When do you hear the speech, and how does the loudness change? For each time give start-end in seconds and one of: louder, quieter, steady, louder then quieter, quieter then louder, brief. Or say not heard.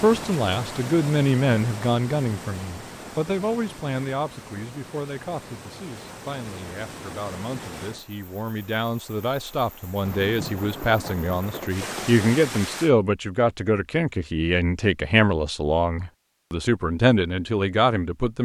0.0-18.4 quieter then louder.